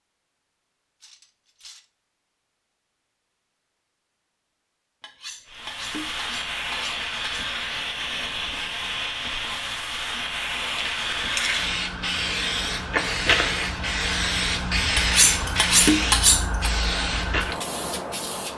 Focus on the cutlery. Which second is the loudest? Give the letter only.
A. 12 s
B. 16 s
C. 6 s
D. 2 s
B.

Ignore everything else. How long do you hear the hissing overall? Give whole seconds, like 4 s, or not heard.
13 s.